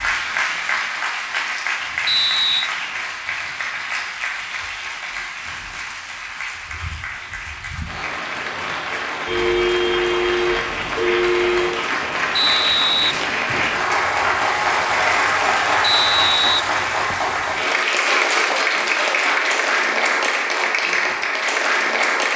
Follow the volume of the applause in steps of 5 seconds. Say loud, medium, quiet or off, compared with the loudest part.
medium, medium, loud, loud, loud.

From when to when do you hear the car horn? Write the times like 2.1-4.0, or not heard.
9.2-11.8.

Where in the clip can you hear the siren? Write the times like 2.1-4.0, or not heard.
not heard.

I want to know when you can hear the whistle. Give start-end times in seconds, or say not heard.
2.0-2.7, 12.3-13.2, 15.8-17.3.